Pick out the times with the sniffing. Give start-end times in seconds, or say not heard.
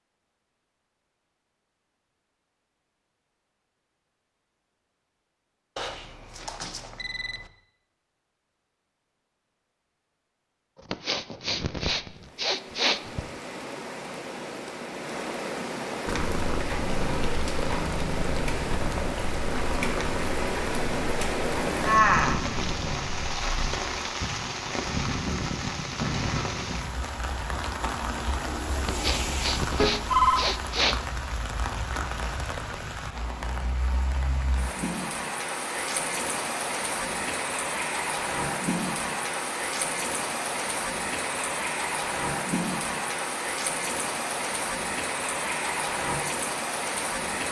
10.8-13.3, 28.8-30.9.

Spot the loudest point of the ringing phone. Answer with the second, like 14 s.
30 s.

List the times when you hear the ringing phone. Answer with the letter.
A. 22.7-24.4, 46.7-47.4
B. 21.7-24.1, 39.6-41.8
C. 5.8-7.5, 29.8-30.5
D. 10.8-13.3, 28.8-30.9
C.